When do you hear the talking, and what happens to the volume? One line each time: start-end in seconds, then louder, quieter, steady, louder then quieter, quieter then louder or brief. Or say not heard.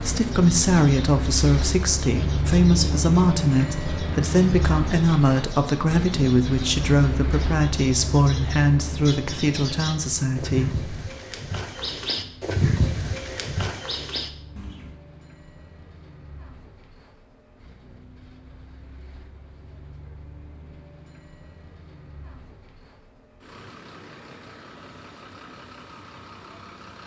0.0-10.8 steady.